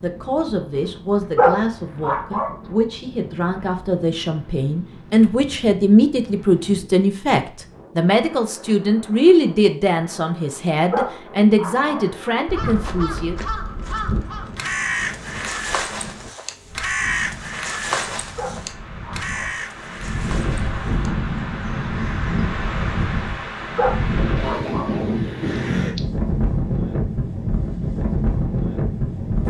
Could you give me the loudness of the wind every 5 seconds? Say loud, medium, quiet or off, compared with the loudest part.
quiet, quiet, quiet, quiet, loud, loud.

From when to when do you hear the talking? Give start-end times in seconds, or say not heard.
0.0-13.3.